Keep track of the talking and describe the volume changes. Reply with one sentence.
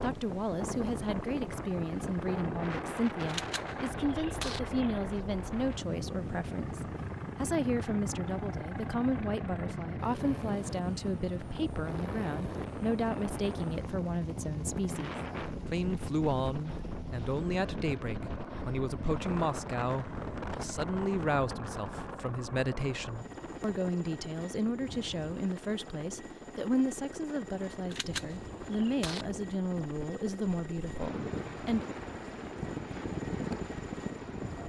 The loudness of the talking stays about the same.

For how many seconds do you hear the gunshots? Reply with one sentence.
The gunshots can be heard for 3 seconds in total.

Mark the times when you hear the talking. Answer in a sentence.
The talking can be heard from 0.0 to 31.9 s.